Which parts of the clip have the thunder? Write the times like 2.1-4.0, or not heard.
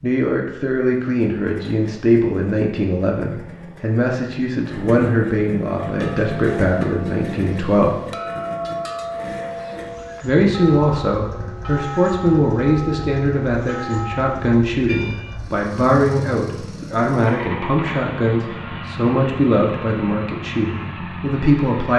not heard.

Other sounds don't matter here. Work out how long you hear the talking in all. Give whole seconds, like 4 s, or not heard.
20 s.